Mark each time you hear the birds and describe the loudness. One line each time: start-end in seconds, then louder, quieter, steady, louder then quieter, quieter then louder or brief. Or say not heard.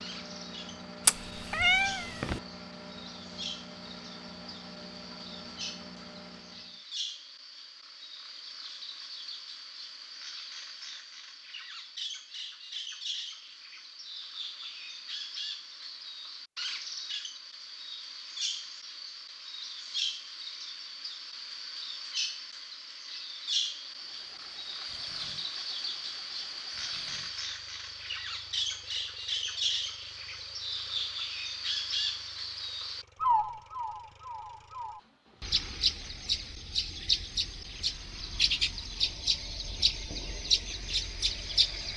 0.0-41.9 louder.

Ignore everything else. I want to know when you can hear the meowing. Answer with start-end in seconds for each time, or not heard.
1.1-2.4.